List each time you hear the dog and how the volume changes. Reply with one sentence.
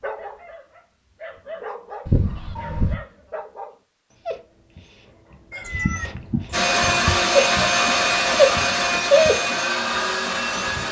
The dog can be heard from 0.0 to 10.8 s, getting quieter then louder.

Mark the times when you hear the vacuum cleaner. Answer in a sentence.
You can hear the vacuum cleaner from 6.5 to 10.8 s.